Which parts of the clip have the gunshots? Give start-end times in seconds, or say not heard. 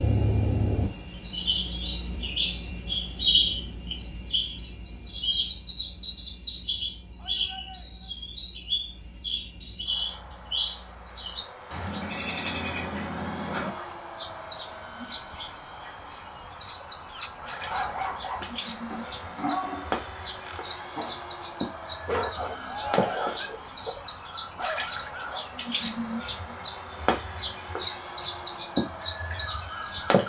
not heard.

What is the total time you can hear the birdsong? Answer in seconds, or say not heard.
30 s.